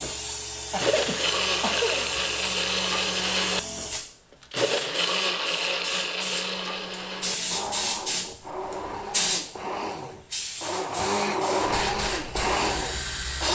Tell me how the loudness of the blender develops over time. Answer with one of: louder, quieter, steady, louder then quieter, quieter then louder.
quieter then louder.